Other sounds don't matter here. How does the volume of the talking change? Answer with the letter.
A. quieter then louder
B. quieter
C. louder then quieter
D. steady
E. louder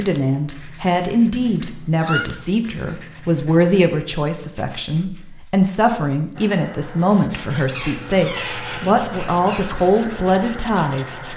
D.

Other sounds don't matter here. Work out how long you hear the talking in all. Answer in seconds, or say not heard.
11 s.